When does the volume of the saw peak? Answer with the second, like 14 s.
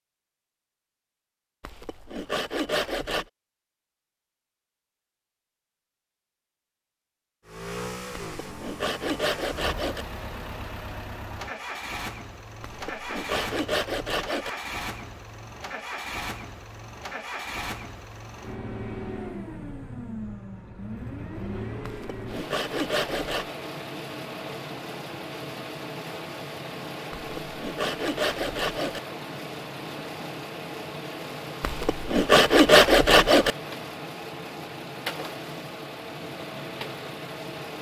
33 s.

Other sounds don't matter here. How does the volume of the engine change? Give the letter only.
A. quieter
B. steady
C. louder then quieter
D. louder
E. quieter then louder
B.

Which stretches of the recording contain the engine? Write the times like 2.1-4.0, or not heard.
7.5-37.7.